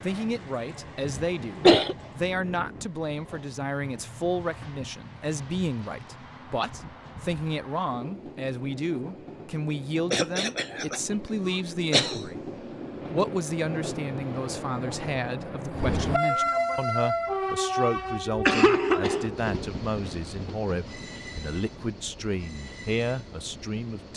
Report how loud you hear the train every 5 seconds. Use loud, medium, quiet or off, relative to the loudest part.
quiet, quiet, medium, loud, quiet.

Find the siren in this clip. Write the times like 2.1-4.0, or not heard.
not heard.